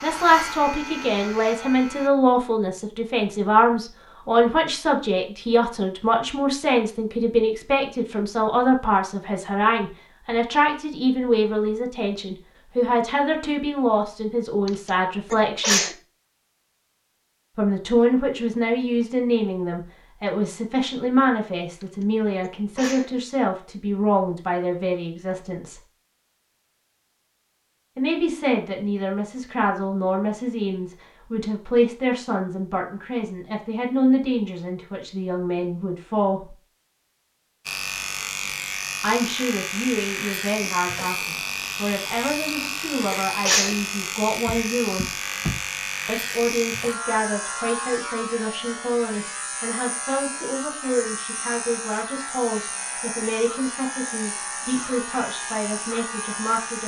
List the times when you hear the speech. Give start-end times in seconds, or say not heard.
0.0-15.9, 17.6-25.8, 27.9-36.5, 39.0-45.2, 46.0-56.8.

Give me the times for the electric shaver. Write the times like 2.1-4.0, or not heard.
0.0-2.1, 37.6-56.8.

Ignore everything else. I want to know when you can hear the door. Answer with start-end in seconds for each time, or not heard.
44.5-45.5.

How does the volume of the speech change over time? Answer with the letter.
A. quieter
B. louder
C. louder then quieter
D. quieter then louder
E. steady
A.